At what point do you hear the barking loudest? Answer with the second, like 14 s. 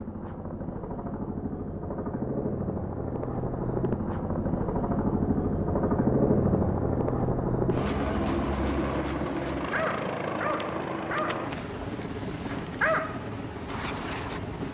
13 s.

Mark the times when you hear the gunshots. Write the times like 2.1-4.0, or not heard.
not heard.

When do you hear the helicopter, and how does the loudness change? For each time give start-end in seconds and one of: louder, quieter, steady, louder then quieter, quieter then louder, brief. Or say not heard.
0.0-14.6 louder then quieter.